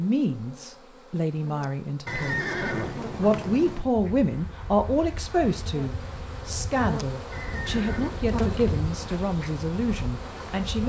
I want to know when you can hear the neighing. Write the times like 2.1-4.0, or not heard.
2.0-3.9, 7.3-9.2.